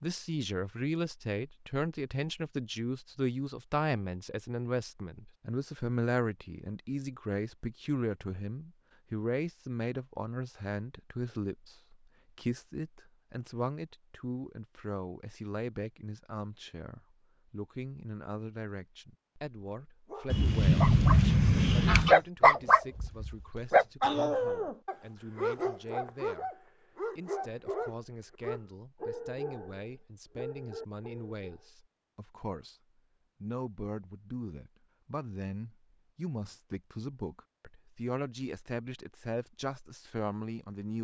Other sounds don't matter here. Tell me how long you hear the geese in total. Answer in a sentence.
You can hear the geese for 2 seconds altogether.